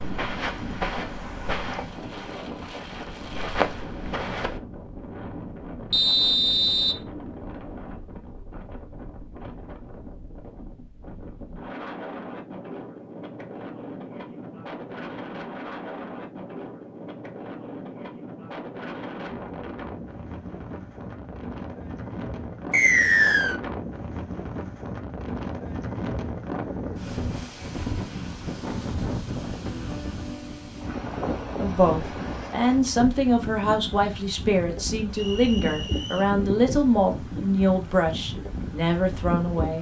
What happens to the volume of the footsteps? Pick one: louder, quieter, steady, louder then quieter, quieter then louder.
quieter then louder.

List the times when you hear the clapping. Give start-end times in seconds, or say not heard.
not heard.